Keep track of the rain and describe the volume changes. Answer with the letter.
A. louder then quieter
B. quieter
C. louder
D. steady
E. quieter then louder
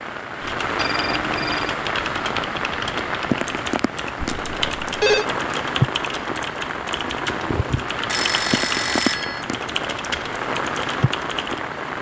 D.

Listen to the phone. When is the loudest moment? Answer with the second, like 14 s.
5 s.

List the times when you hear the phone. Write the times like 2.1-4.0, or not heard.
0.8-1.8, 4.2-5.2, 8.1-9.4.